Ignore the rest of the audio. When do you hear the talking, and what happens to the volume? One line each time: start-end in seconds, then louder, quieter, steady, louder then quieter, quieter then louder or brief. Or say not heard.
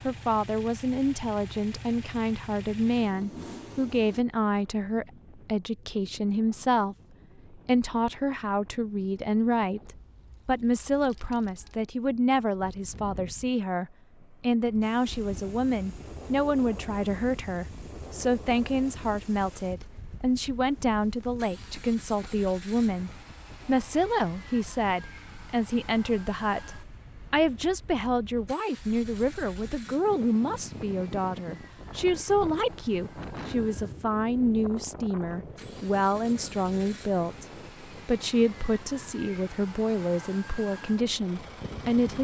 0.1-42.1 steady.